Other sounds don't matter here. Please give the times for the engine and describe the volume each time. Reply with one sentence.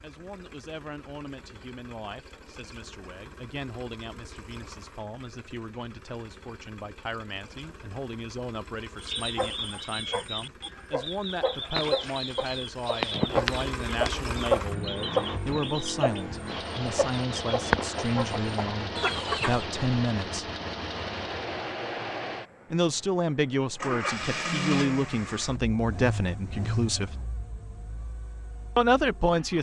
You can hear the engine from 0.0 to 29.5 s, getting louder.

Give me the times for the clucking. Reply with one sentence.
The clucking can be heard from 9.0 to 19.6 s.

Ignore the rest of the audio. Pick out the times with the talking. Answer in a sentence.
You can hear the talking from 0.0 to 20.5 s, from 22.7 to 27.1 s and from 28.8 to 29.5 s.